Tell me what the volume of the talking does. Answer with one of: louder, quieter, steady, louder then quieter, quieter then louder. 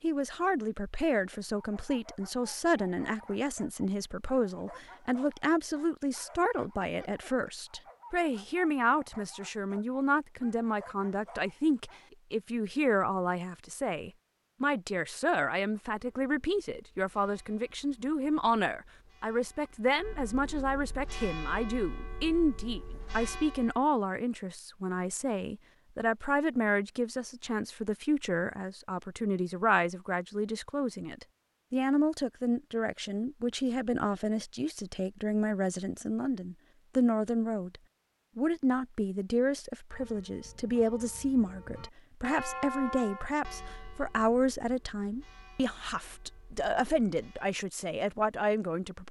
steady.